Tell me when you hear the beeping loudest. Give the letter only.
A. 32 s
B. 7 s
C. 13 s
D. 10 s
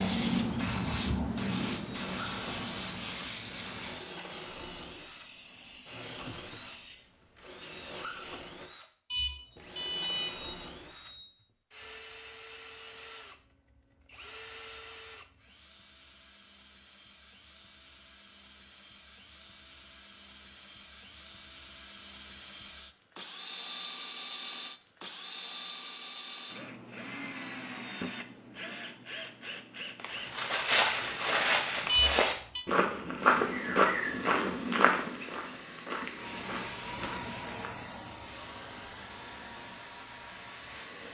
A.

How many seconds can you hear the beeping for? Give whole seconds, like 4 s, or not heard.
3 s.